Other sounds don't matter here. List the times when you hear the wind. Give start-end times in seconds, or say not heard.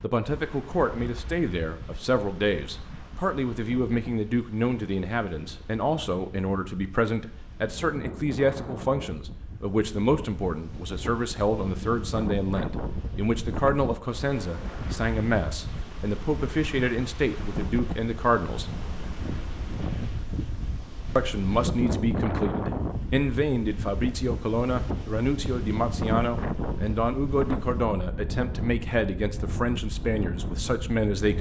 0.0-31.3.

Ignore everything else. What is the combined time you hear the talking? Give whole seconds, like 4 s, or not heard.
29 s.